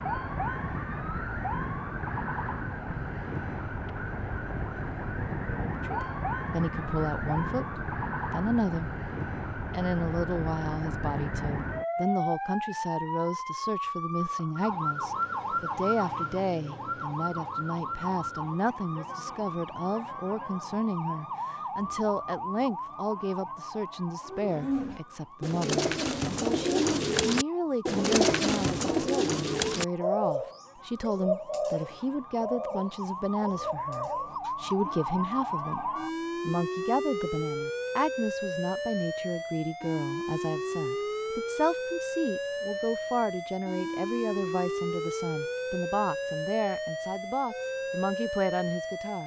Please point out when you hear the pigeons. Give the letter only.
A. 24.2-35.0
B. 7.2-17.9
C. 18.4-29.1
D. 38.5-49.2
A.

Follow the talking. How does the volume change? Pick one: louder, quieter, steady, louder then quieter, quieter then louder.
steady.